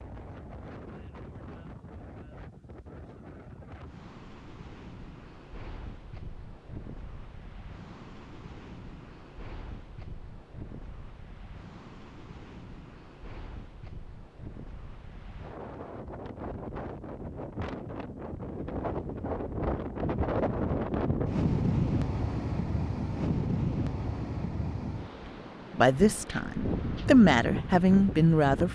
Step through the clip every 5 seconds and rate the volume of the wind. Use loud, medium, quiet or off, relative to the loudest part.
quiet, quiet, quiet, medium, loud, medium.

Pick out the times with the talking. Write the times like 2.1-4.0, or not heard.
25.7-28.6.